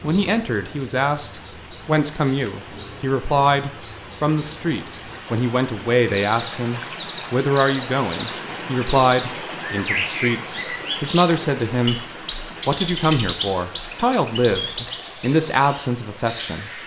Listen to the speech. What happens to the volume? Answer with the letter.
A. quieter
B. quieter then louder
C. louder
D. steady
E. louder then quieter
D.